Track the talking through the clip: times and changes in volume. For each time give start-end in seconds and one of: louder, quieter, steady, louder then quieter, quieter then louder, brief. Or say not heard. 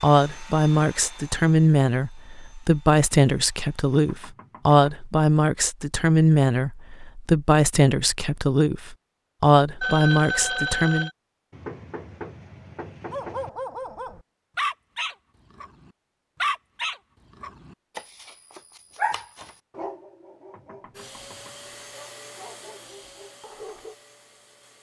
0.0-11.1 steady.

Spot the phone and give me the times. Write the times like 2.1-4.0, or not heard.
9.8-11.2.